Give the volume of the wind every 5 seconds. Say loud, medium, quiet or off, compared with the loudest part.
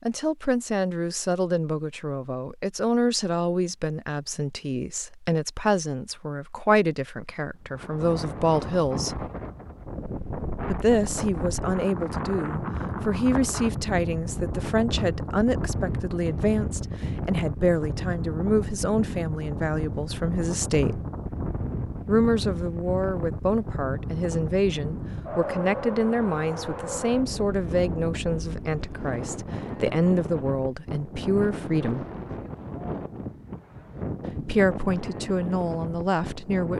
off, loud, loud, loud, loud, loud, loud, loud.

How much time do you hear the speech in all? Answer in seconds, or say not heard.
32 s.